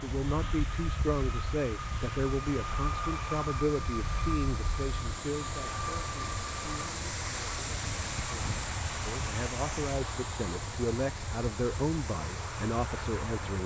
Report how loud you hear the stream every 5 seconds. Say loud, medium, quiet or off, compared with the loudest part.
medium, loud, medium.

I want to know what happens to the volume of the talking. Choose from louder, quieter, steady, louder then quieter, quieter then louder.
quieter then louder.